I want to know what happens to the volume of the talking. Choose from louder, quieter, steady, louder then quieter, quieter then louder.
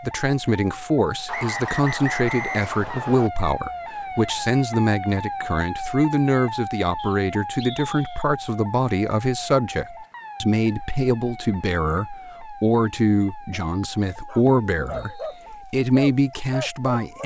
steady.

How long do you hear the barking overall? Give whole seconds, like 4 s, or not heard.
4 s.